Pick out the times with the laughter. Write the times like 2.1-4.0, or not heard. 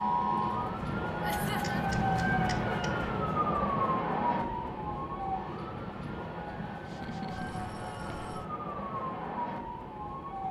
1.2-1.9, 6.8-7.6.